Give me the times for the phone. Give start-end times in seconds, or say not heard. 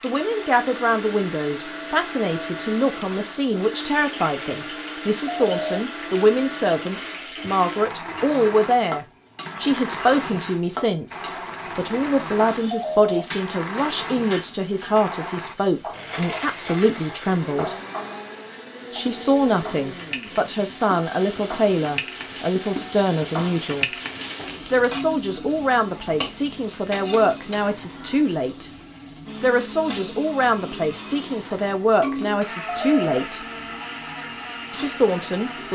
5.2-5.8, 12.7-13.2, 32.6-33.2.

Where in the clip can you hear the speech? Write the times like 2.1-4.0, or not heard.
0.0-17.8, 18.9-23.9, 24.7-28.7, 29.4-33.5, 34.7-35.7.